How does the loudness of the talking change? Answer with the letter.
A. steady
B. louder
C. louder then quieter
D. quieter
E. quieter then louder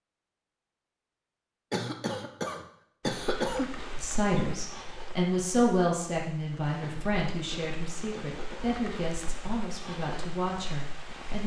D.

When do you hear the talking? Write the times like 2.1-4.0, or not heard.
4.0-11.4.